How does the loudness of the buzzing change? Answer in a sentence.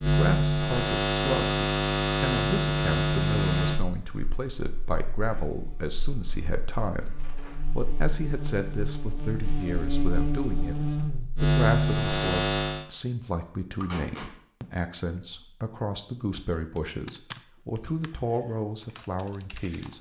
The loudness of the buzzing goes down, then up.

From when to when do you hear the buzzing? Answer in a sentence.
The buzzing can be heard from 0.0 to 12.8 s.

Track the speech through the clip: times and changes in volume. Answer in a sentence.
You can hear the speech from 0.0 to 19.9 s, at a steady volume.